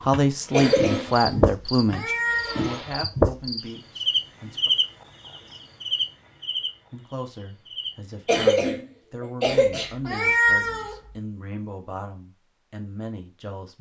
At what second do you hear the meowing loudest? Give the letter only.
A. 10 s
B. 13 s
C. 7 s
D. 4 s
A.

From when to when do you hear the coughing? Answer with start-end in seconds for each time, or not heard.
0.5-1.1, 8.2-9.9.